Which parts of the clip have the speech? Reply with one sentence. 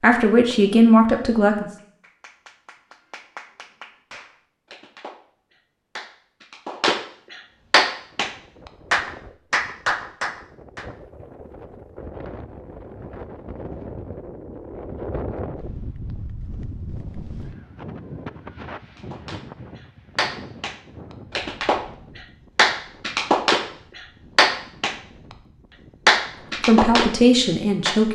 You can hear the speech from 0.0 to 1.7 s and from 26.6 to 28.1 s.